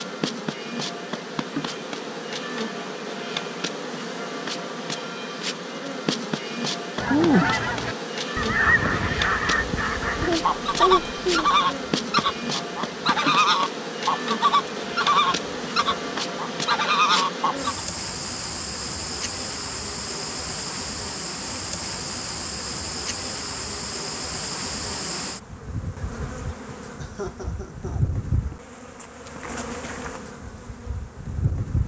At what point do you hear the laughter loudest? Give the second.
11 s.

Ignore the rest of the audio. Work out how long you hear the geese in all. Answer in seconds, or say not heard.
11 s.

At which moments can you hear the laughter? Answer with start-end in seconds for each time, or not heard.
10.2-11.6, 26.9-28.1.